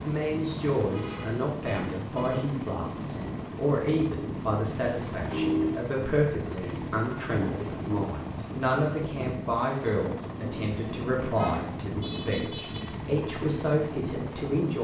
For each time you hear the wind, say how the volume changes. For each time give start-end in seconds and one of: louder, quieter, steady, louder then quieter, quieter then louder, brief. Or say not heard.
0.0-14.7 steady.